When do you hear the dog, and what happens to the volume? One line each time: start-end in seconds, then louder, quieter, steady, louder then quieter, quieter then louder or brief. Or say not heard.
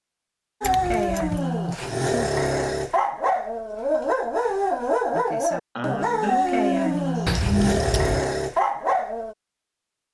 0.6-9.3 steady.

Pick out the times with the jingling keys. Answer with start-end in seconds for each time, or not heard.
0.6-1.4, 7.2-8.2.